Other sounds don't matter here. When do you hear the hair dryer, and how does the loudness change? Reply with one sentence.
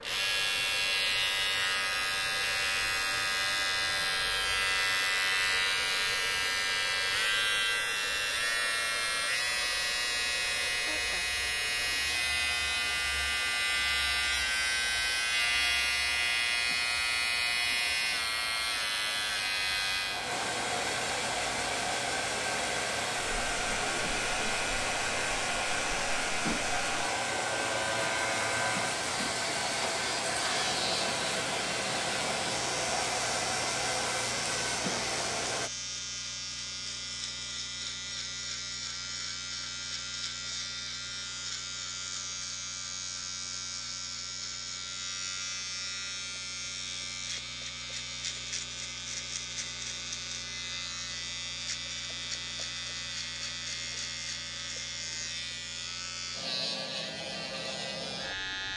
You can hear the hair dryer from 0.0 to 35.7 s, getting louder.